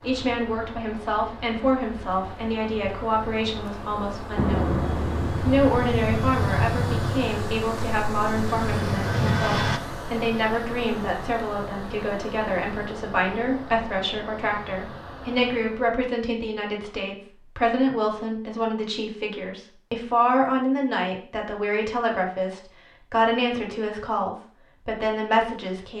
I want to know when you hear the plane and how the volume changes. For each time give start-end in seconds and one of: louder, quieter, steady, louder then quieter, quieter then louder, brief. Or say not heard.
4.3-9.8 quieter then louder.